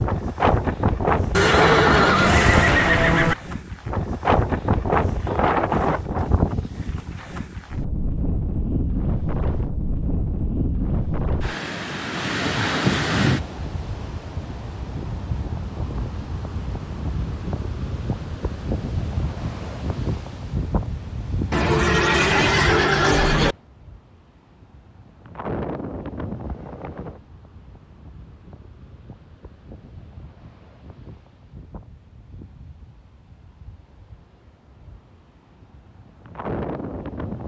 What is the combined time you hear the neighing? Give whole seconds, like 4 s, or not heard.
4 s.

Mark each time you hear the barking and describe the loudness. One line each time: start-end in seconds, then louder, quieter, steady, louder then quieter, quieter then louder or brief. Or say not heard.
not heard.